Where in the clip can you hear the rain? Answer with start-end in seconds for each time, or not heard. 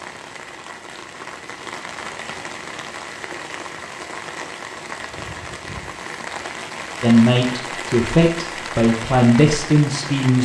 0.0-10.4.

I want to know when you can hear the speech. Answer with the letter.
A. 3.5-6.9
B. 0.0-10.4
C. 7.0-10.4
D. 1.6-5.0
C.